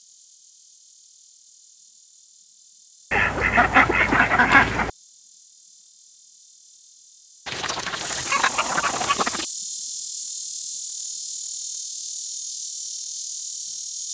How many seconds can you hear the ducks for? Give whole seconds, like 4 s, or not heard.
4 s.